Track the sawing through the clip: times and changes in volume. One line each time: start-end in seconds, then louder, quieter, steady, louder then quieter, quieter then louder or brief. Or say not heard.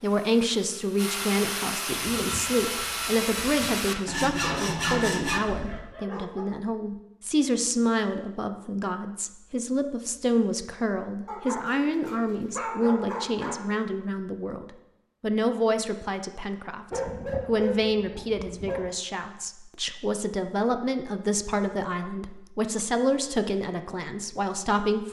0.0-5.8 louder.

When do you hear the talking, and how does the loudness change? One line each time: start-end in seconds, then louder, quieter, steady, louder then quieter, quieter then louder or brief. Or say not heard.
0.0-25.0 steady.